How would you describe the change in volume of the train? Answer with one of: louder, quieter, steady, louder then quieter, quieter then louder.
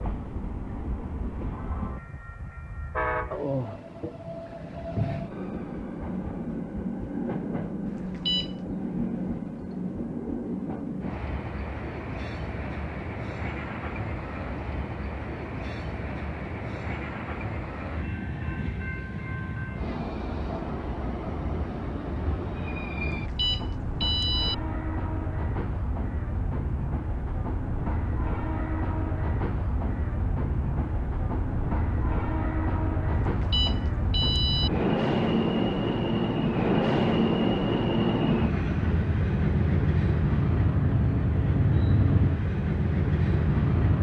louder.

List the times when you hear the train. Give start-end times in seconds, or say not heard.
0.0-43.9.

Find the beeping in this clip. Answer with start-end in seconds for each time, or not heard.
7.8-8.6, 23.1-24.6, 33.1-34.7.